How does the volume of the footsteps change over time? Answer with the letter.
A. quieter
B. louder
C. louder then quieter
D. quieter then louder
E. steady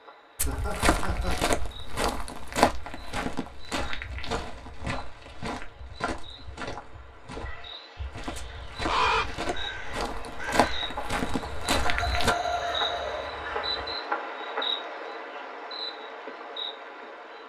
D.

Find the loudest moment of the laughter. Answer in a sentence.
The volume of the laughter peaks at 12 seconds.